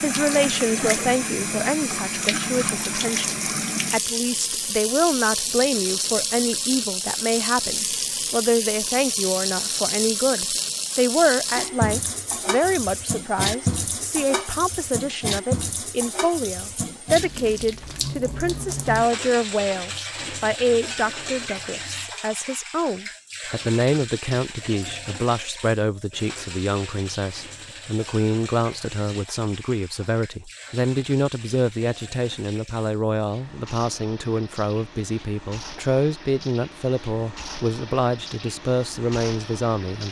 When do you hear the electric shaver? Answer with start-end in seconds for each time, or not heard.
not heard.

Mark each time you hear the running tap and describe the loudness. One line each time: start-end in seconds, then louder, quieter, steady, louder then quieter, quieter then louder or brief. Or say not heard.
0.0-40.0 quieter.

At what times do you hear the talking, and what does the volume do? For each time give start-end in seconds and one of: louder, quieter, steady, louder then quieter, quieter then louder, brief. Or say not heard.
0.0-40.0 steady.